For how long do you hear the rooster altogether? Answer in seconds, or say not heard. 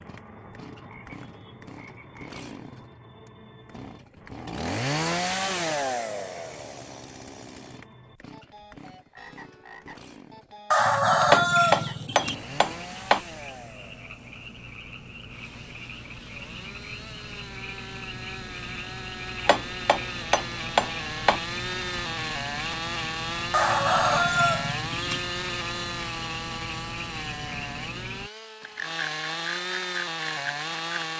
3 s.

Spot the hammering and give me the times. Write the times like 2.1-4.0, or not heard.
11.2-13.2, 19.4-21.4.